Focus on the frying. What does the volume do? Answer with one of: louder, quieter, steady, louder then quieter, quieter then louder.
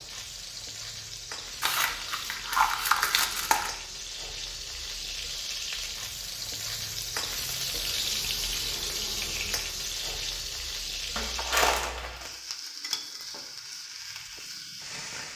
louder then quieter.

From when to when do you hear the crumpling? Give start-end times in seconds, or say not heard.
1.6-3.7, 11.2-12.3.